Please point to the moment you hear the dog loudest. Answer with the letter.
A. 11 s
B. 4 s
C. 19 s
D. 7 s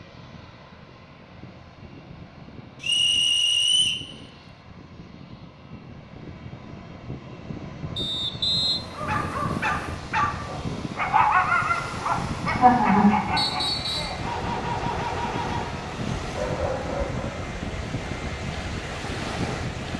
A.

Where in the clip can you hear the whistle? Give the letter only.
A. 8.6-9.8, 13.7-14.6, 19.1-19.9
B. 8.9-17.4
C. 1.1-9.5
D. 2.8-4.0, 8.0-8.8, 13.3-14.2
D.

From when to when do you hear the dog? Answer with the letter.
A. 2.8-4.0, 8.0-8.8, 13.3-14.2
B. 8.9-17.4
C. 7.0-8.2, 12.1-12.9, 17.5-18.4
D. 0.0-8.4
B.